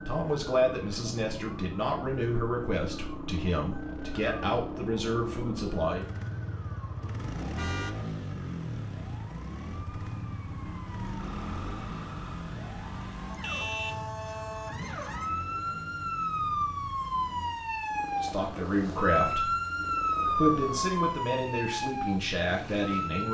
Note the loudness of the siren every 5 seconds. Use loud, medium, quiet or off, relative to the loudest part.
quiet, quiet, medium, loud, loud.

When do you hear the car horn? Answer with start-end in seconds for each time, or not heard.
7.5-8.0, 13.4-14.0.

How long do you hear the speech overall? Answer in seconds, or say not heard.
10 s.